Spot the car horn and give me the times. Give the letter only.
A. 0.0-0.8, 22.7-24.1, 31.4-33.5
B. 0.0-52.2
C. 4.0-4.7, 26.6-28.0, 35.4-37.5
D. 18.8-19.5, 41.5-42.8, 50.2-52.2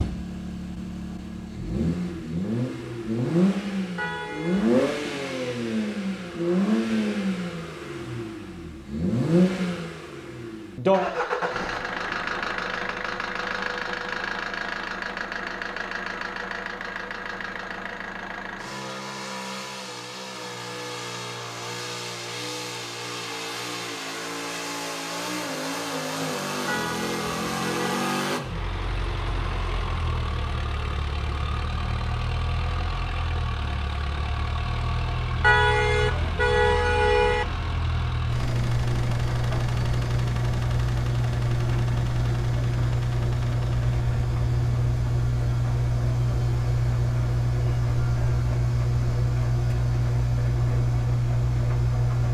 C.